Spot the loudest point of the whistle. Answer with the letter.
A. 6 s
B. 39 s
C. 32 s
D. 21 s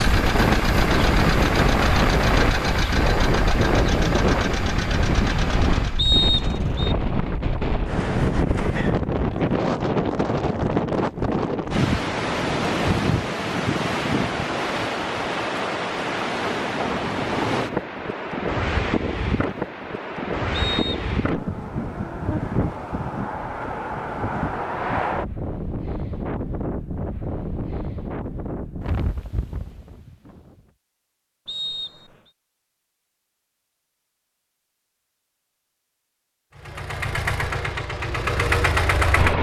A.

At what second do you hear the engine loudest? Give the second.
39 s.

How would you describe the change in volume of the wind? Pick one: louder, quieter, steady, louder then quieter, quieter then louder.
quieter.